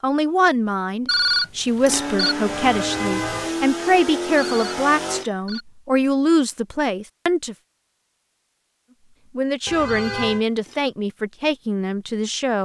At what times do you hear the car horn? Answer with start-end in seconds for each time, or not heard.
2.5-3.5, 9.7-10.4.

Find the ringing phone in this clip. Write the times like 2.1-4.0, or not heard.
1.1-2.4, 4.3-5.7, 9.8-10.8.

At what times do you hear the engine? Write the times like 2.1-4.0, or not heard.
1.9-5.2.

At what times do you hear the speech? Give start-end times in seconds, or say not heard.
0.0-7.5, 9.3-12.6.